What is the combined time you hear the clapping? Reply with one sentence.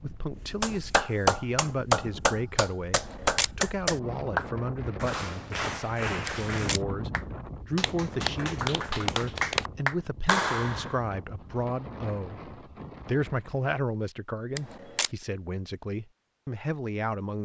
You can hear the clapping for 10 seconds altogether.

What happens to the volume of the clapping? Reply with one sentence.
The loudness of the clapping goes down, then up.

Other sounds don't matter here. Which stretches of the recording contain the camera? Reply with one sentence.
You can hear the camera from 3.0 to 3.5 s, from 6.2 to 6.8 s and from 14.6 to 15.1 s.